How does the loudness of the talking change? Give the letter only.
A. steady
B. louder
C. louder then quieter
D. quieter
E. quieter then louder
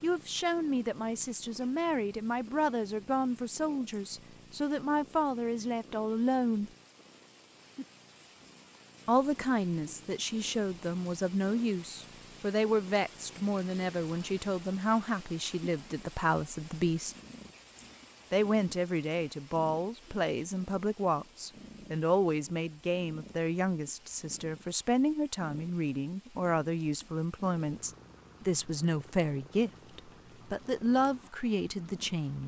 A.